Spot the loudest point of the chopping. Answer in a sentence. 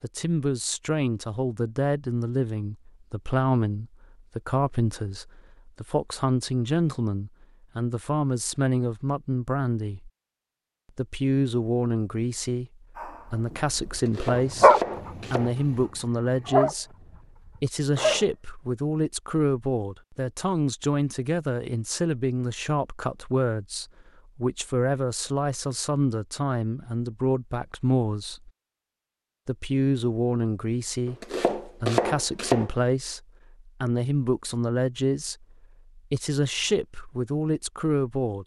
The volume of the chopping peaks at 32 seconds.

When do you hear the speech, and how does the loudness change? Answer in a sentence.
You can hear the speech from 0.0 to 10.1 s, at a steady volume; from 10.9 to 28.5 s, at a steady volume; and from 29.4 to 38.4 s, at a steady volume.